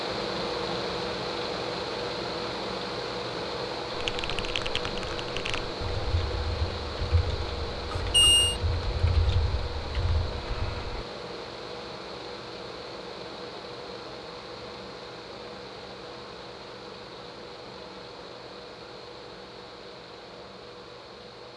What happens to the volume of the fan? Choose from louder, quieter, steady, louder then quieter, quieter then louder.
quieter.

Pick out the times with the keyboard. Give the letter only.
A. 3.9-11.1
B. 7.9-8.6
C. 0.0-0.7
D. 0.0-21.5
A.